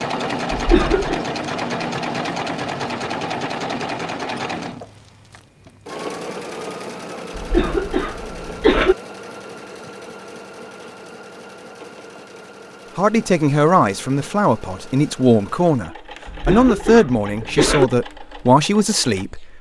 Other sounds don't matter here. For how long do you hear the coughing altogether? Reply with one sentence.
The coughing can be heard for 4 seconds in total.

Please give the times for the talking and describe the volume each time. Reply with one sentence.
The talking can be heard from 12.9 to 19.5 s, at a steady volume.